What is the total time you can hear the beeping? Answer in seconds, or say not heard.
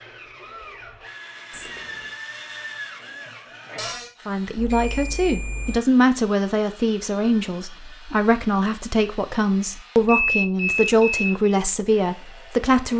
3 s.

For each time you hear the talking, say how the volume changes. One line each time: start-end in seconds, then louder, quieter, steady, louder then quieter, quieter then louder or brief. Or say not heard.
4.2-12.9 steady.